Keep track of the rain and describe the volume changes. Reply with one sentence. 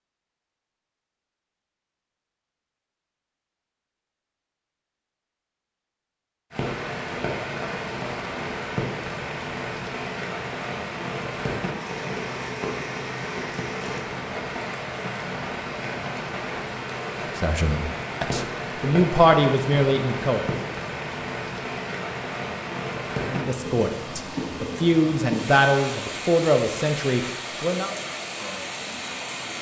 The loudness of the rain stays about the same.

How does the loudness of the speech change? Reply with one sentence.
The loudness of the speech stays about the same.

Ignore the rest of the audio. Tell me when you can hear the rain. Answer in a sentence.
You can hear the rain from 6.5 to 29.5 s.